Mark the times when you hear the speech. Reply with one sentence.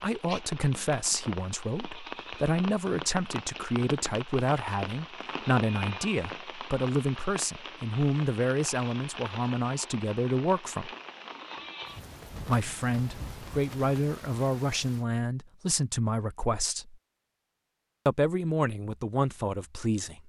The speech can be heard from 0.0 to 10.9 s, from 12.4 to 16.9 s and from 18.1 to 20.2 s.